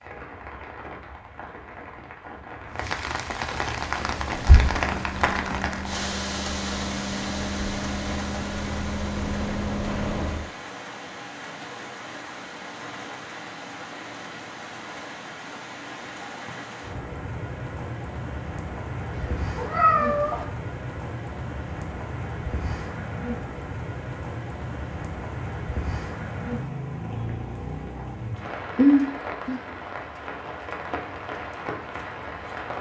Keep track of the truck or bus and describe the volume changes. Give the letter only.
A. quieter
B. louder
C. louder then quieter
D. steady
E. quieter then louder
B.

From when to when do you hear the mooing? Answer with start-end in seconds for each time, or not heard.
not heard.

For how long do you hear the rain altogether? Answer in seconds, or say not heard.
33 s.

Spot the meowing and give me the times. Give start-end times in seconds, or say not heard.
19.1-20.4.